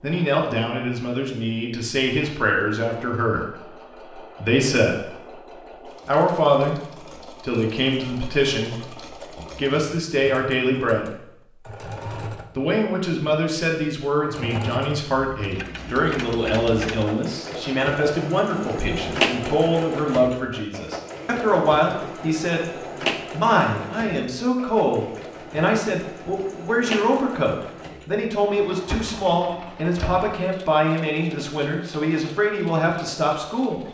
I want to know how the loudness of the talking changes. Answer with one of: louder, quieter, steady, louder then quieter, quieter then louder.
steady.